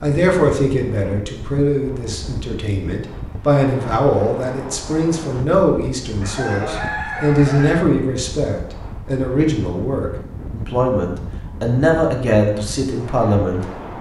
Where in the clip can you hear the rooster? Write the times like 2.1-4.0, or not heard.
6.2-7.8.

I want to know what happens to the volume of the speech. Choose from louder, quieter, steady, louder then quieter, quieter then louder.
steady.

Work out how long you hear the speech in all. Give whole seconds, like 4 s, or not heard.
14 s.